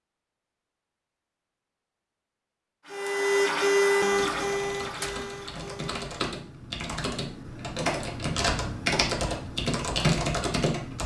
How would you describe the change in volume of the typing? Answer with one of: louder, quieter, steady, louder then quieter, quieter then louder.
louder.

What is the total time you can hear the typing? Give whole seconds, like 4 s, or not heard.
7 s.